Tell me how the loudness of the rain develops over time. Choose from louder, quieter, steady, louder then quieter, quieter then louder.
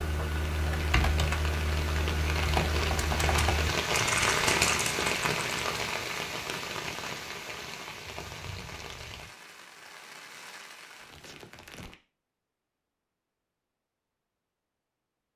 louder then quieter.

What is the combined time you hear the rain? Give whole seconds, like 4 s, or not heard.
12 s.